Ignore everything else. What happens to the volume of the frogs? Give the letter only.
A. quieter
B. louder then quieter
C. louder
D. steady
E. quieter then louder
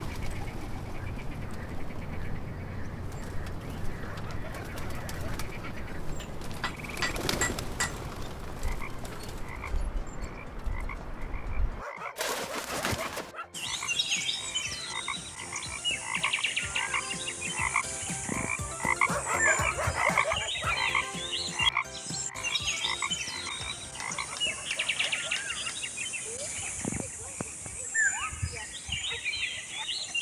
B.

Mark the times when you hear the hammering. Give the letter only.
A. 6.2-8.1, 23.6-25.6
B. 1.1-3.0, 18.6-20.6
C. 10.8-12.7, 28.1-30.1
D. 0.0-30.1
A.